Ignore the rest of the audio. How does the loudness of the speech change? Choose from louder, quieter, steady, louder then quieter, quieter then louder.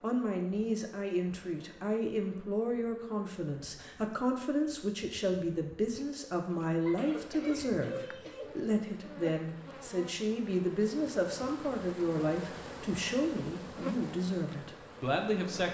steady.